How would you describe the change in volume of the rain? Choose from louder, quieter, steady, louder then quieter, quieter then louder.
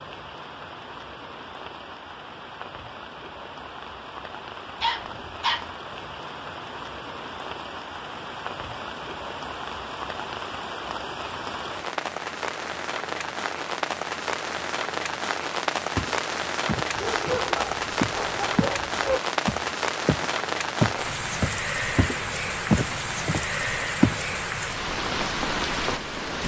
louder.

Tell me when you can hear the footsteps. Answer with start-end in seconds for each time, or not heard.
15.9-18.8, 19.4-24.2.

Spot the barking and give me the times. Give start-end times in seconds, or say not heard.
4.8-5.7, 16.9-19.2.